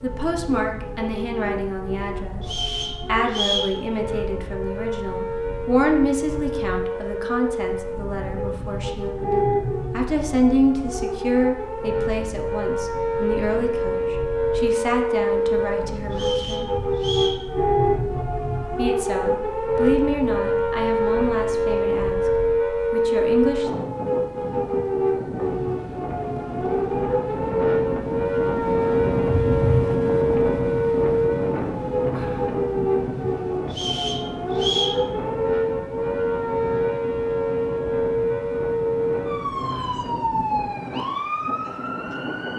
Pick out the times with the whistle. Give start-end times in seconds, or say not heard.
2.4-3.8, 16.1-17.4, 33.7-35.0.